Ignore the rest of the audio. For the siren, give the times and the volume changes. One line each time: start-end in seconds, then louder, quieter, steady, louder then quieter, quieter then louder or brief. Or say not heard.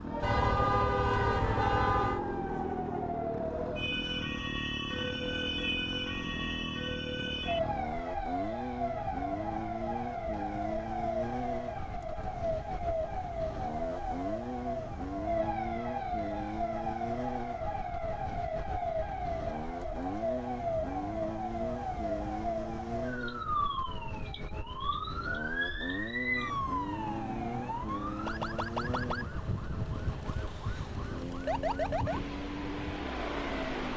0.1-33.9 steady.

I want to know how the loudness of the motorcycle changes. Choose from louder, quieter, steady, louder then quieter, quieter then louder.
steady.